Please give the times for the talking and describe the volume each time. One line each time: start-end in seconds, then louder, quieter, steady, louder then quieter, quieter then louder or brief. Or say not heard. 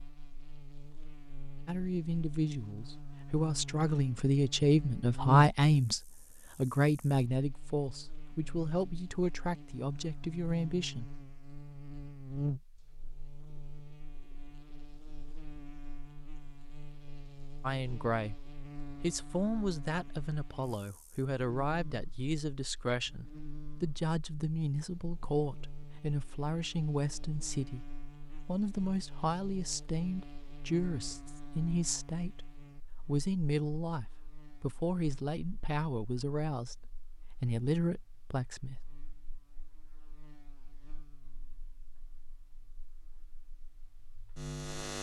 1.6-11.1 louder then quieter
17.6-27.9 steady
28.4-38.8 steady.